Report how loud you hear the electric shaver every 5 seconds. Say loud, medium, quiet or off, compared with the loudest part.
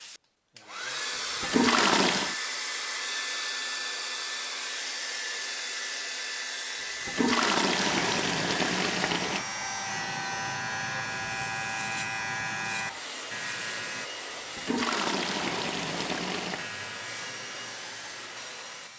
off, loud, loud, medium.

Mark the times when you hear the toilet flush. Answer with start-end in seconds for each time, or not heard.
1.4-2.4, 7.0-9.4, 14.6-16.6.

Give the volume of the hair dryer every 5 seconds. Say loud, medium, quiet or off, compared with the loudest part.
loud, loud, medium, medium.